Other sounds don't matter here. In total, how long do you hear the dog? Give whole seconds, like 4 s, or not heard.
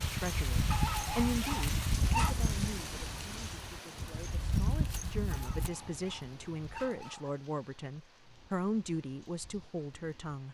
4 s.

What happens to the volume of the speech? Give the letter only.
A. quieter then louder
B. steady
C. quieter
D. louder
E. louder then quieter
A.